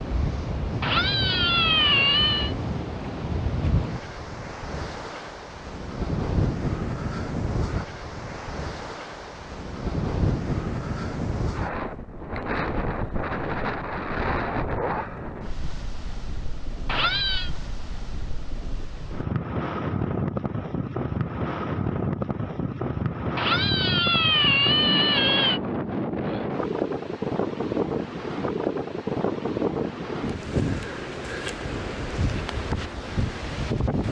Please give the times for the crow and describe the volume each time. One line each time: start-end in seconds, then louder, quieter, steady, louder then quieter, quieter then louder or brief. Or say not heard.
not heard.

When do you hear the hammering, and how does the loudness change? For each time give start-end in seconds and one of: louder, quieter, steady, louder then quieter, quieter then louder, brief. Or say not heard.
not heard.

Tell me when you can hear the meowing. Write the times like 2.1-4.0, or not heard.
0.8-2.5, 16.9-17.5, 23.4-25.6.